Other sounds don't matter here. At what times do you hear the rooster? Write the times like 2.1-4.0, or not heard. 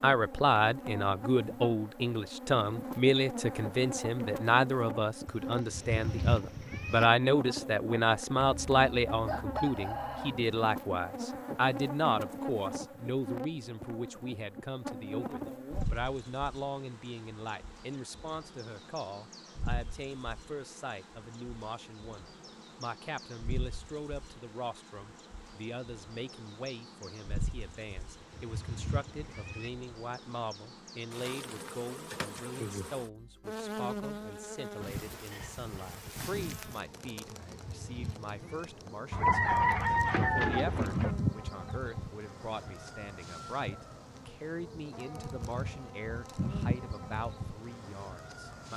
8.4-10.4, 39.1-41.1.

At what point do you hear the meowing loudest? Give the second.
6 s.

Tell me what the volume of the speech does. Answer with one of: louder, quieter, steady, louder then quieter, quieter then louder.
quieter.